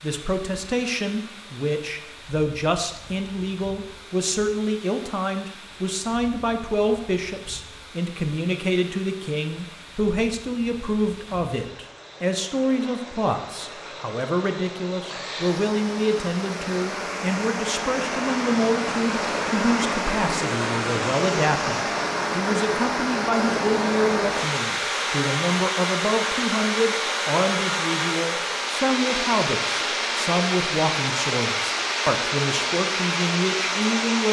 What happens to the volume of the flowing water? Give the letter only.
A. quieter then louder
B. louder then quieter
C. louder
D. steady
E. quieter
C.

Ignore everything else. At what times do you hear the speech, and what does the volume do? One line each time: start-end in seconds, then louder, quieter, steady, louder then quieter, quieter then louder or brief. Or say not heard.
0.0-34.2 steady.